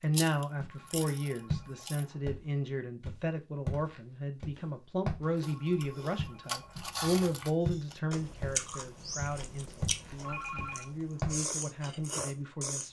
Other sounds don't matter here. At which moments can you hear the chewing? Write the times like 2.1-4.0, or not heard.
0.1-2.0, 5.4-12.8.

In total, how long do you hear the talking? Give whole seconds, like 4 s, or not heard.
13 s.